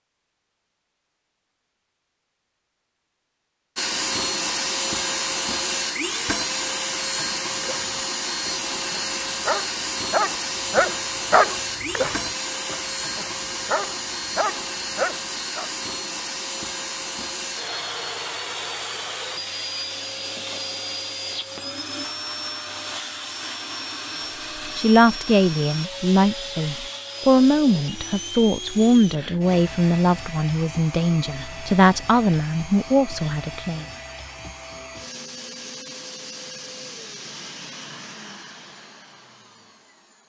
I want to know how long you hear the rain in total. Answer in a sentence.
You can't hear the rain here.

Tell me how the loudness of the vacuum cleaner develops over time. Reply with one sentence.
The volume of the vacuum cleaner goes down.